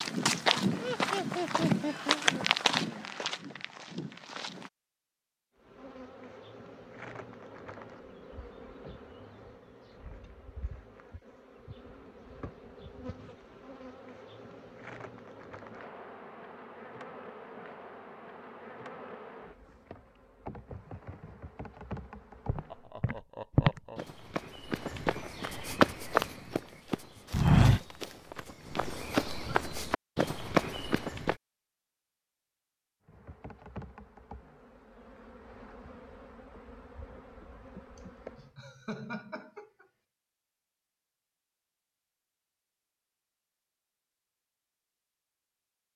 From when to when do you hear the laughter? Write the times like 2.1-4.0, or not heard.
0.8-2.2, 22.7-24.1, 38.0-39.9.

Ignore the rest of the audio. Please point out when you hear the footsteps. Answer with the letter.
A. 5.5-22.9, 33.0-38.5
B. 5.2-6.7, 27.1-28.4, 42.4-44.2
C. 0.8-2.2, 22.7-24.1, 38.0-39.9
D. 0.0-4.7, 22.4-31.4
D.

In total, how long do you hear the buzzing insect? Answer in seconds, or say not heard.
23 s.